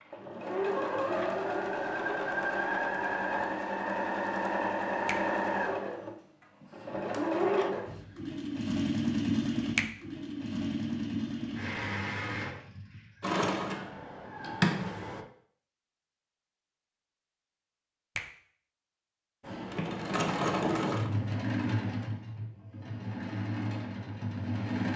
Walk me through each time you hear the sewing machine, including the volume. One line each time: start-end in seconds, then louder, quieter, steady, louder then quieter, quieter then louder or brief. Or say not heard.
0.0-15.2 steady
19.4-24.9 quieter.